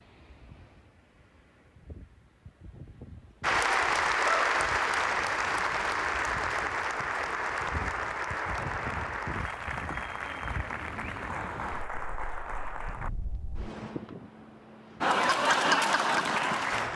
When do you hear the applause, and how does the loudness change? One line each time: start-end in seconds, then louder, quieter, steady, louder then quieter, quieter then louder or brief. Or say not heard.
3.4-13.1 quieter
15.0-16.9 brief.